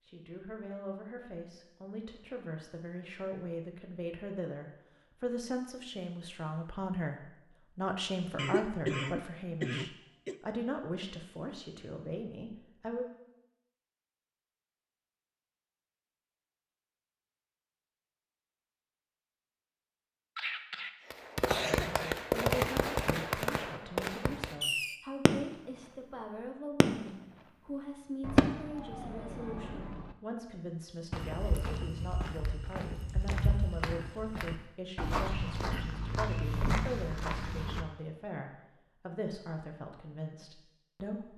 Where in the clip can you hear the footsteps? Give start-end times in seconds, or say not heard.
31.1-37.9.